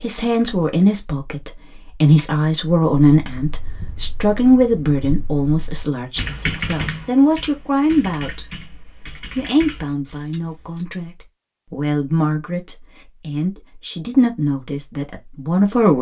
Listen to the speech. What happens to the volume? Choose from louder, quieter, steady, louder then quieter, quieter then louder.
quieter.